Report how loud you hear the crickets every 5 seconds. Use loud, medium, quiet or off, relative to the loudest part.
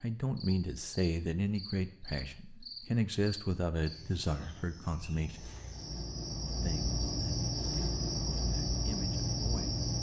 quiet, loud.